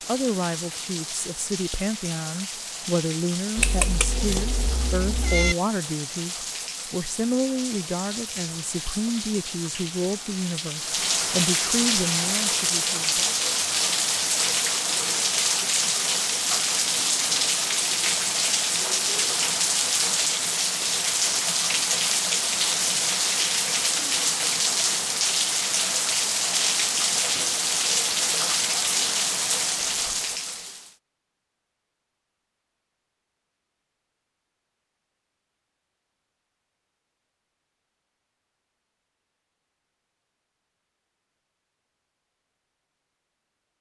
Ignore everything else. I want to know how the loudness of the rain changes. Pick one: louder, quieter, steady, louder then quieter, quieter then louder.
louder.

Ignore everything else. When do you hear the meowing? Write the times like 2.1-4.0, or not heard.
3.5-5.5.